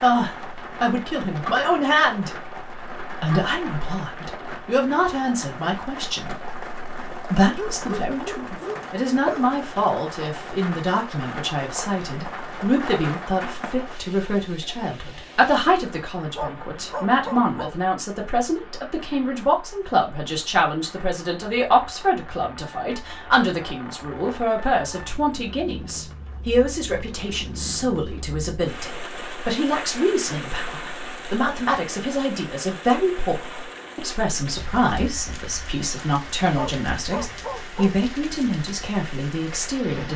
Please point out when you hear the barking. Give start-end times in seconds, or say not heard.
7.5-9.5, 16.4-17.8, 36.5-38.0.